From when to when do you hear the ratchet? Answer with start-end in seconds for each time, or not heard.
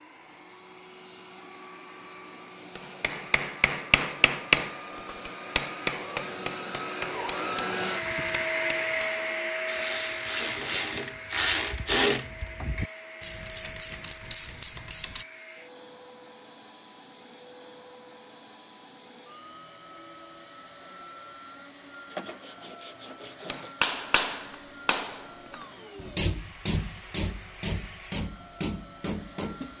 9.7-15.2.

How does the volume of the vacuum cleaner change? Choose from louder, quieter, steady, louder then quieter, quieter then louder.
louder then quieter.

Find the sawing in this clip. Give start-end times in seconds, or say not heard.
22.1-23.7.